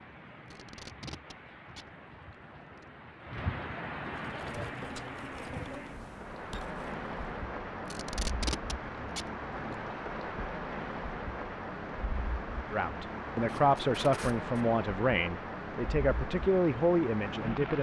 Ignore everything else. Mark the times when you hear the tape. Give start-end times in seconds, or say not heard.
0.5-2.9, 7.8-9.8, 13.4-14.7.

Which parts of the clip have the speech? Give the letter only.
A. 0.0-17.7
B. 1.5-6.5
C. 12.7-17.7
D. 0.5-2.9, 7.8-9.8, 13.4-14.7
C.